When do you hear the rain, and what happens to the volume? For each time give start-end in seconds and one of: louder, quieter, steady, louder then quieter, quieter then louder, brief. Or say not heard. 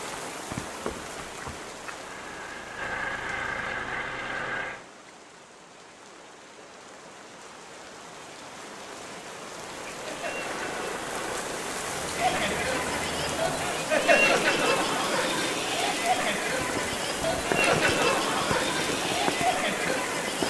0.0-20.4 quieter then louder.